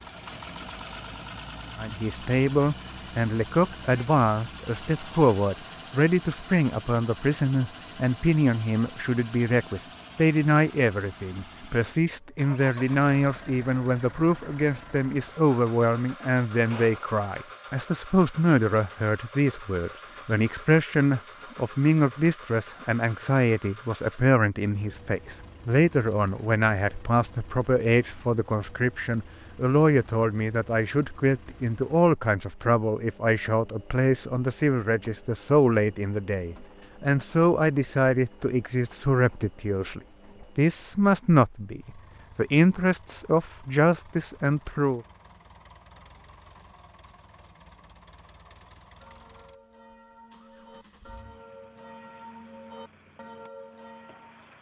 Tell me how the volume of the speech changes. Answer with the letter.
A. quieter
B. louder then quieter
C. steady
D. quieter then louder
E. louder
C.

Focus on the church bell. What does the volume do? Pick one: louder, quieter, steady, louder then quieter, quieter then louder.
louder.